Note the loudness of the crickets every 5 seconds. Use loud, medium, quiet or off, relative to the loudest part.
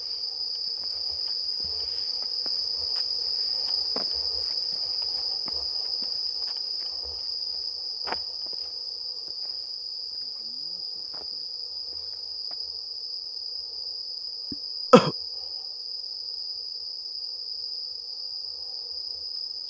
loud, loud, medium, medium.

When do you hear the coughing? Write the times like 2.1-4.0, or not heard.
14.5-15.2.